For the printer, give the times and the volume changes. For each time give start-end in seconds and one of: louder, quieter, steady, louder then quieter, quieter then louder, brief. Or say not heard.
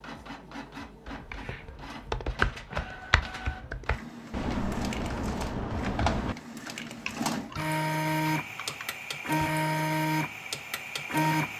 0.0-11.5 louder.